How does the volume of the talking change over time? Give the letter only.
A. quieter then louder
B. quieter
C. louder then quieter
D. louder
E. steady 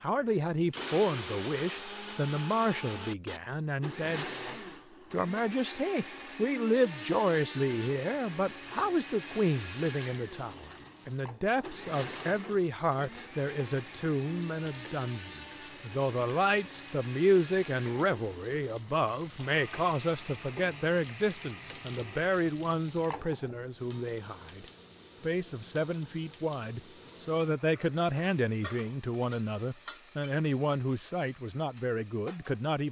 E.